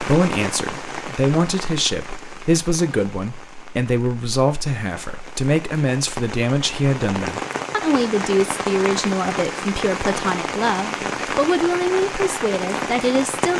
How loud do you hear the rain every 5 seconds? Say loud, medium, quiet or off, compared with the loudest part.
medium, loud, loud.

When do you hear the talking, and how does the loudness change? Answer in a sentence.
You can hear the talking from 0.0 to 13.5 s, at a steady volume.